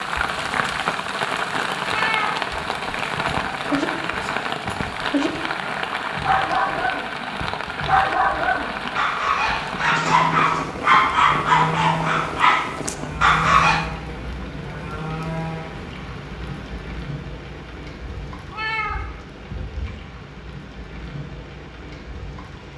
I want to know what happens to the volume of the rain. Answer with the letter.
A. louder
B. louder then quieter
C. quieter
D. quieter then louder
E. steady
C.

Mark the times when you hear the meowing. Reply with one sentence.
You can hear the meowing from 1.9 to 2.5 s and from 18.5 to 19.1 s.